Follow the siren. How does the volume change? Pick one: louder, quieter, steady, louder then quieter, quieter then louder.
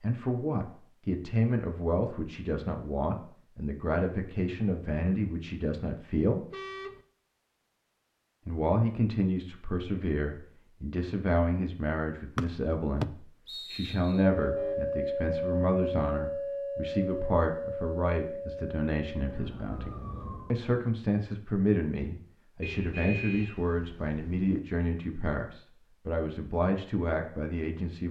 quieter.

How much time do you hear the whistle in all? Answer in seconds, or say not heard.
2 s.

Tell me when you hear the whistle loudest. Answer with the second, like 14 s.
13 s.